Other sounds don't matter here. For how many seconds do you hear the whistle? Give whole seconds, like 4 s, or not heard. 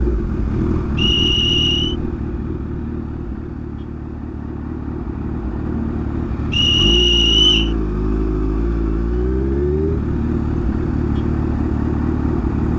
2 s.